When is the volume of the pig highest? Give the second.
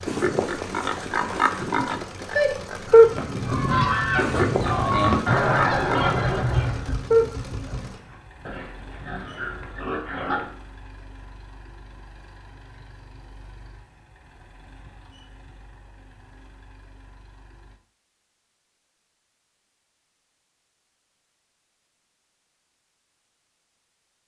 3 s.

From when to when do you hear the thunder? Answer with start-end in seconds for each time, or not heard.
6.3-7.9.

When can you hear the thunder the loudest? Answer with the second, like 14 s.
7 s.